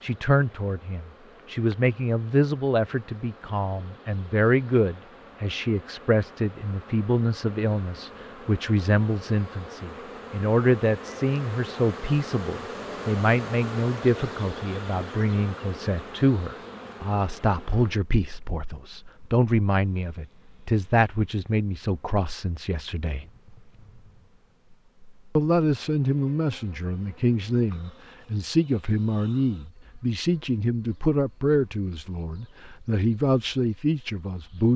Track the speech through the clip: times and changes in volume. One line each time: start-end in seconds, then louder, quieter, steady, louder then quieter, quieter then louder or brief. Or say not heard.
0.0-23.2 steady
25.4-34.7 steady.